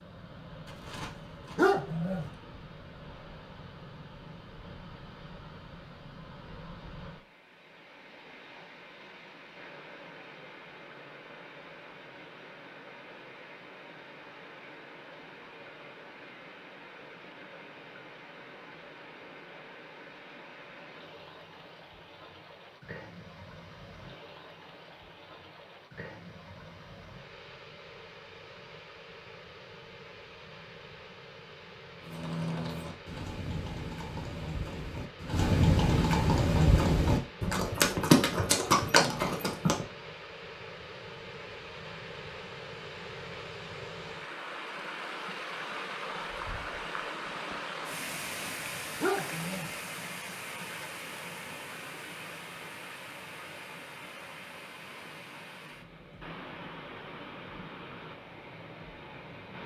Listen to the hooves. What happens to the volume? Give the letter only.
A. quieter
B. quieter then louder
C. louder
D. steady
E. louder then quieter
C.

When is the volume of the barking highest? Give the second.
2 s.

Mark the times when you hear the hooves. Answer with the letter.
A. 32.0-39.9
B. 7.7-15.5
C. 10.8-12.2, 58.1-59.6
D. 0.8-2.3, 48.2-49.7
A.